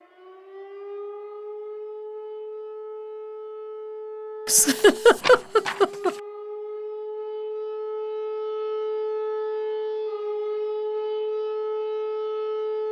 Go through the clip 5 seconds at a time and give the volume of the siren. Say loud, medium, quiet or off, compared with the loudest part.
medium, loud, loud.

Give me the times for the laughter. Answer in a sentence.
The laughter can be heard from 4.5 to 6.1 s.